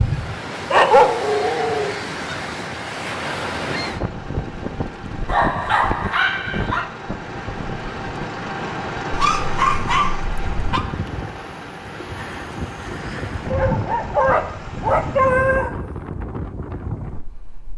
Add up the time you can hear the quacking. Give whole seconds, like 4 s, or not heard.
not heard.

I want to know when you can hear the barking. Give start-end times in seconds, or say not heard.
0.7-1.9, 5.2-6.8, 9.1-10.8, 13.5-15.7.